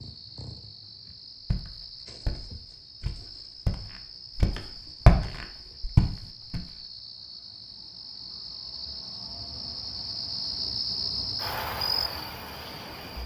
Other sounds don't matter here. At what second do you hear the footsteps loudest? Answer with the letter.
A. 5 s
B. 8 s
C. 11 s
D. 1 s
A.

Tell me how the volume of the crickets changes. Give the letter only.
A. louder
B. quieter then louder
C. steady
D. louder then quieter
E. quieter
A.